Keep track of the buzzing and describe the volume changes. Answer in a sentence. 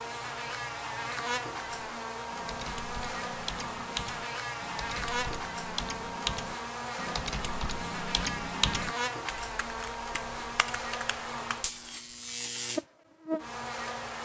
The loudness of the buzzing stays about the same.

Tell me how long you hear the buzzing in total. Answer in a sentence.
The buzzing can be heard for 14 seconds in total.